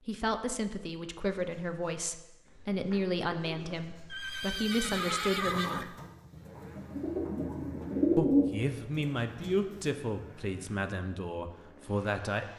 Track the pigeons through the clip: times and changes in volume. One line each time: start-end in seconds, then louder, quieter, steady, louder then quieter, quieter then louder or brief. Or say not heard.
1.4-9.9 louder.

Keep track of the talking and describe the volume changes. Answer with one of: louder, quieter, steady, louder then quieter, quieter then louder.
steady.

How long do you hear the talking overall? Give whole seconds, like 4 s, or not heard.
10 s.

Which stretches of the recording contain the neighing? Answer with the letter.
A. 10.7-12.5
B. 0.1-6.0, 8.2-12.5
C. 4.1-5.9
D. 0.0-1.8
C.